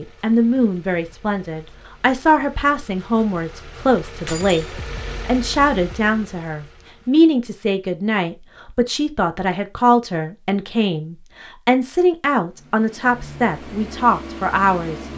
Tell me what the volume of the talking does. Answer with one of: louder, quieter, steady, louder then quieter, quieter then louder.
steady.